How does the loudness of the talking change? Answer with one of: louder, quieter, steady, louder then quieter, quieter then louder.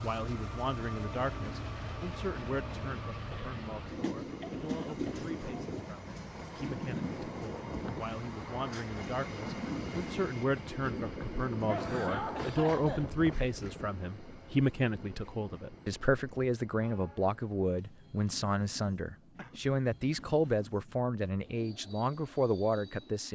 louder.